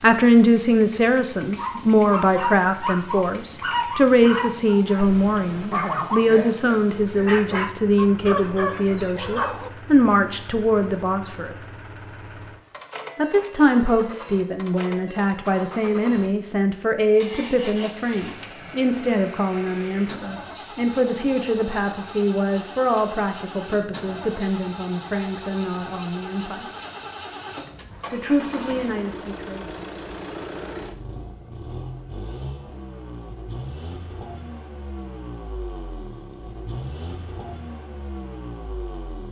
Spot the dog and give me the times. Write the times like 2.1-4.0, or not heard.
1.6-9.7.